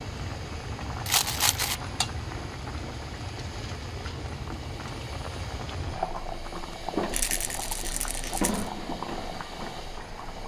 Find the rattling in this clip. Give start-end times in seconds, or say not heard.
1.1-1.8, 7.1-8.7.